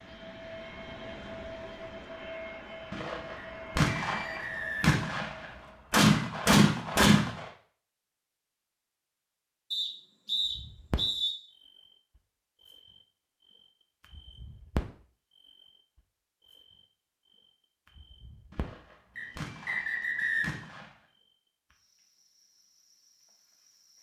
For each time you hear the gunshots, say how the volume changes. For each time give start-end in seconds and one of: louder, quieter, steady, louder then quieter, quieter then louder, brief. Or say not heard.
2.9-7.5 quieter then louder
18.5-20.9 brief.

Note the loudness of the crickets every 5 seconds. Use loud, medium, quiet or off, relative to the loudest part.
off, off, loud, quiet, quiet.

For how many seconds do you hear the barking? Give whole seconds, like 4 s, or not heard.
not heard.